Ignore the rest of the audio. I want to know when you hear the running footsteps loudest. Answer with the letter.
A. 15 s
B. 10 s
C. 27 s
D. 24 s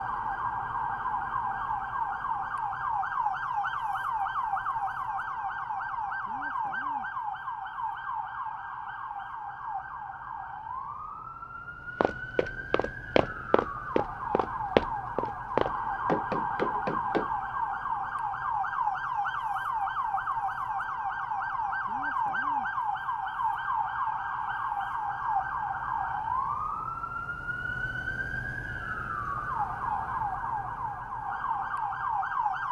A.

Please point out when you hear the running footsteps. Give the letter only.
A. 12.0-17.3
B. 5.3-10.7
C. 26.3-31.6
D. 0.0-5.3
A.